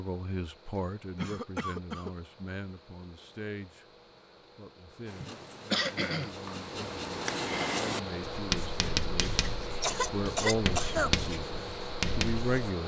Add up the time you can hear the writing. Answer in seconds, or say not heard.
8 s.